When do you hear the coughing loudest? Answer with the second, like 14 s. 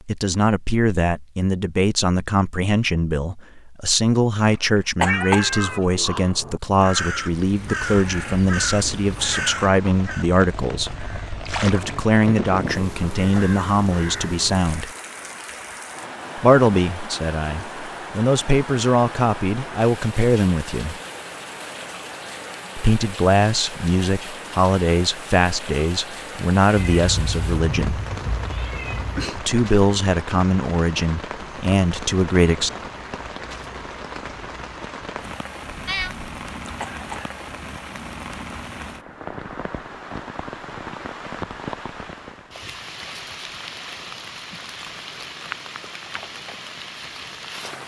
5 s.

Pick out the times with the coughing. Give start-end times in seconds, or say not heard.
5.0-6.0, 36.8-37.4.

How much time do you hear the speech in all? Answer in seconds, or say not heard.
28 s.